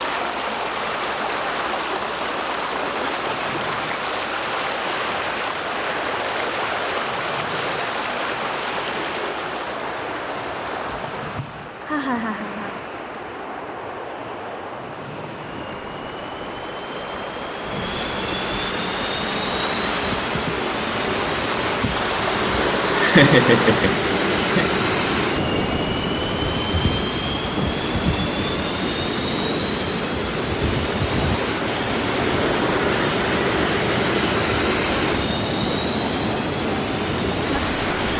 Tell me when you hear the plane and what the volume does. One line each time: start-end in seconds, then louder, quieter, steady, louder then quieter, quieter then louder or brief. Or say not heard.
3.1-38.1 louder.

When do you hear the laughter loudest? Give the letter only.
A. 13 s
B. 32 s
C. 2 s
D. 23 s
D.